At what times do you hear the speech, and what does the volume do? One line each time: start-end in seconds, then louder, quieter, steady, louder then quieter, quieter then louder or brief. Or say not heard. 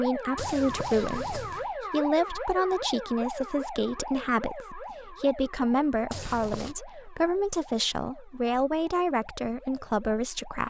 0.0-10.6 steady.